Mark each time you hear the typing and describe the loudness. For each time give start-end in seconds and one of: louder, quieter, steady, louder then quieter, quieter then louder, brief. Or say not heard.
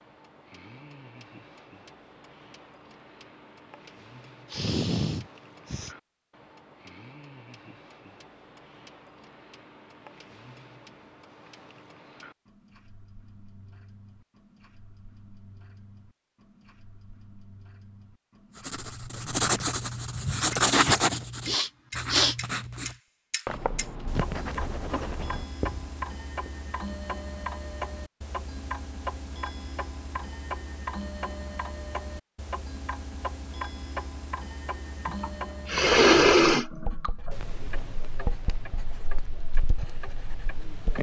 not heard.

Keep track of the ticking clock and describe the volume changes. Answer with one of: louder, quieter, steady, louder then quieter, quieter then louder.
louder.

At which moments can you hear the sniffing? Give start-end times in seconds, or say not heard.
4.5-6.0, 21.4-22.4, 35.0-37.3.